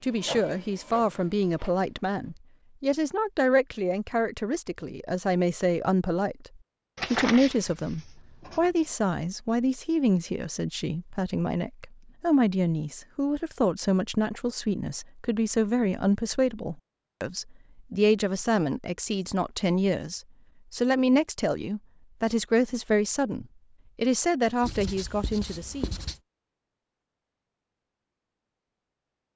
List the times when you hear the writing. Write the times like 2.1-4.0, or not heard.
7.0-8.9, 24.6-26.2.